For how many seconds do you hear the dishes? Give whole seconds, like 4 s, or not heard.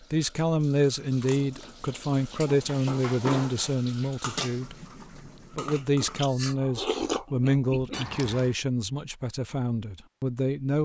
4 s.